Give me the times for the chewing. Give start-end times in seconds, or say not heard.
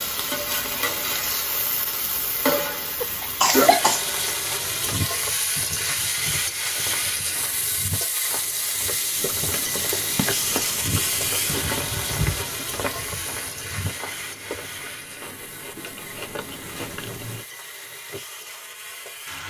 9.2-17.4.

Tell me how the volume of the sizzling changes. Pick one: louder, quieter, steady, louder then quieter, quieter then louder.
quieter.